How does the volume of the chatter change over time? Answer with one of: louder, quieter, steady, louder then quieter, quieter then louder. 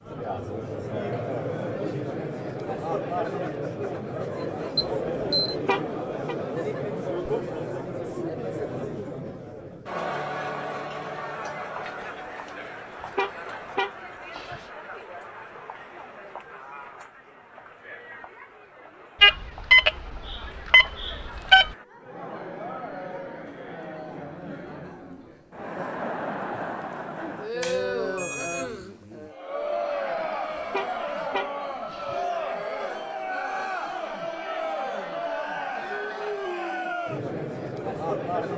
quieter then louder.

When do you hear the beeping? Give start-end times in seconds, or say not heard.
4.8-5.5, 19.2-21.7, 27.6-28.7.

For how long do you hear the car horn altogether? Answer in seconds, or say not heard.
4 s.